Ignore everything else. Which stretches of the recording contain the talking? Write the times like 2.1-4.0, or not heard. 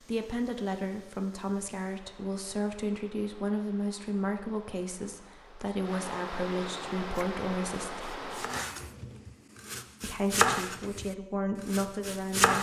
0.1-8.2, 10.0-12.5.